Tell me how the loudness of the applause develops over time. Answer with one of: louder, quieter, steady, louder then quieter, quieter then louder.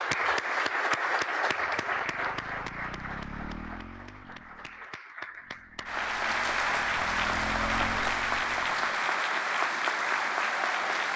quieter then louder.